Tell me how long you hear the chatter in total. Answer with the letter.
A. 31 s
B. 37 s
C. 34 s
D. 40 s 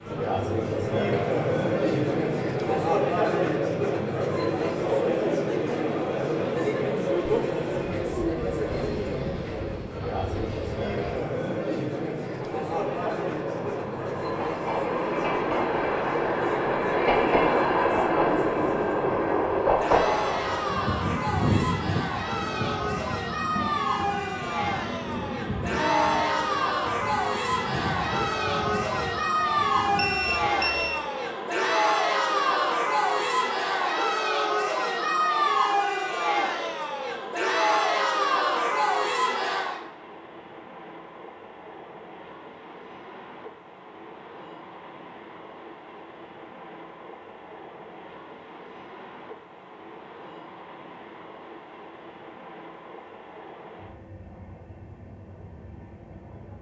D.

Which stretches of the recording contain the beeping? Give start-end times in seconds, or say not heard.
29.9-31.0.